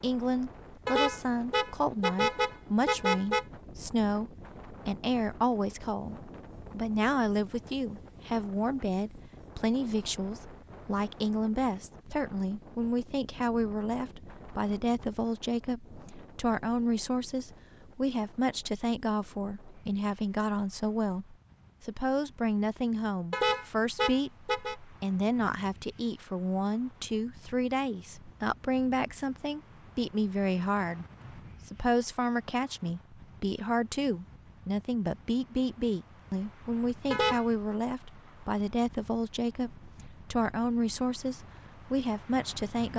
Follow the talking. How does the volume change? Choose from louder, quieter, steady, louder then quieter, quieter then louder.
steady.